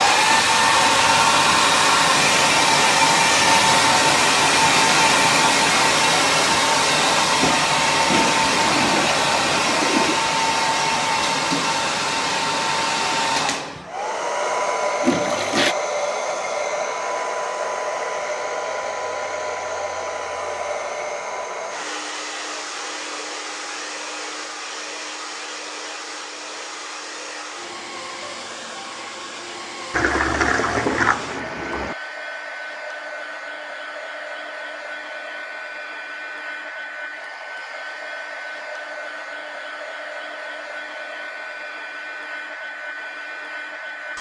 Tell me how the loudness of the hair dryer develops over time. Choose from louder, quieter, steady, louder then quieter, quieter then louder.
quieter.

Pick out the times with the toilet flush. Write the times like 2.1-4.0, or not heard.
8.1-10.2, 15.0-15.8, 29.9-31.9.